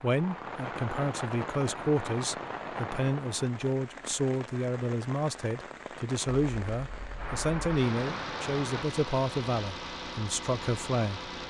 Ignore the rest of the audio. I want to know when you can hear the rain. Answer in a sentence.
You can hear the rain from 0.0 to 8.8 s.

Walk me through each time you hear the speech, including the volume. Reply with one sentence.
The speech can be heard from 0.0 to 11.3 s, at a steady volume.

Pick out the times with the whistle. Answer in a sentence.
You can't hear the whistle here.